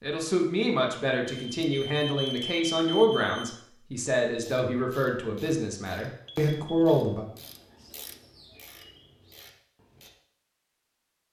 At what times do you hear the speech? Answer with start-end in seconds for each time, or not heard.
0.0-7.2.